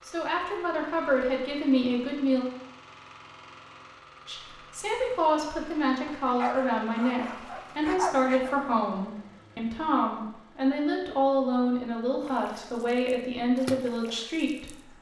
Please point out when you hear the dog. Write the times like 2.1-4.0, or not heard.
6.0-8.7.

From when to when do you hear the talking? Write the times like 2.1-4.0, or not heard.
0.1-2.5, 4.2-14.9.